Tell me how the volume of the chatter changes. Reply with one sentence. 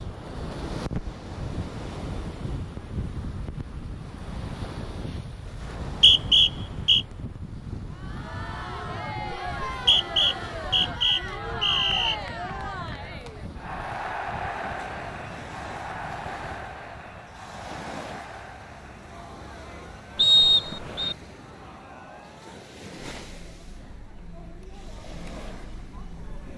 The volume of the chatter goes down.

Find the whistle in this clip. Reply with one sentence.
The whistle can be heard from 5.6 to 7.0 s, from 9.7 to 12.2 s and from 20.1 to 21.1 s.